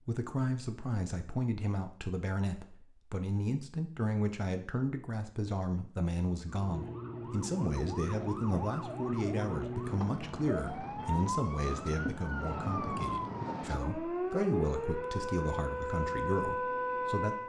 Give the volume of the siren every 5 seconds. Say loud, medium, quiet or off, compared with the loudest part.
off, medium, loud, loud.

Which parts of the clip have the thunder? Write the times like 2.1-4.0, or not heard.
not heard.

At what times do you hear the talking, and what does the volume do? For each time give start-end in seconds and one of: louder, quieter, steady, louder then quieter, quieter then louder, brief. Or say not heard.
0.1-17.4 steady.